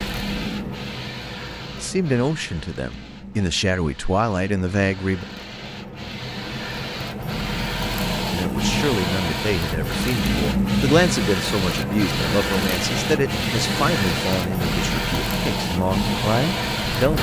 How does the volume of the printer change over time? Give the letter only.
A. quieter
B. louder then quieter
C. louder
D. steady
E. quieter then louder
C.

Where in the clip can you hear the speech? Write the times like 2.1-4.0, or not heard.
1.8-5.2, 8.3-17.1.